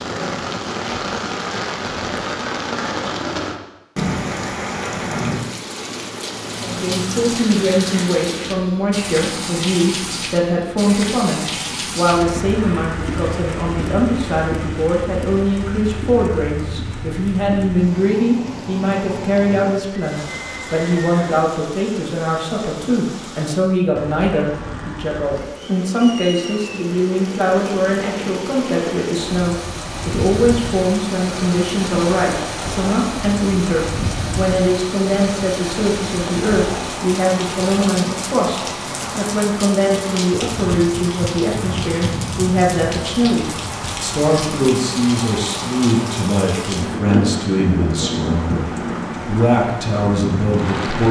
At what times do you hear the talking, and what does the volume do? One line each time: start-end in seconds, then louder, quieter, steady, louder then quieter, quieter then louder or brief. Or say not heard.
6.6-51.0 steady.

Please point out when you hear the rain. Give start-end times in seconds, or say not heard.
0.0-51.0.